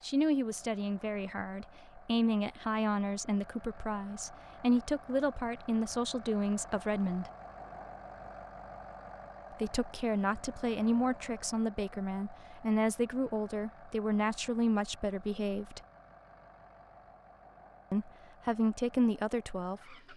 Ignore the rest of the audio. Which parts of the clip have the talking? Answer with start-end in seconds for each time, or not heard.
0.0-7.3, 9.5-15.8, 17.9-20.1.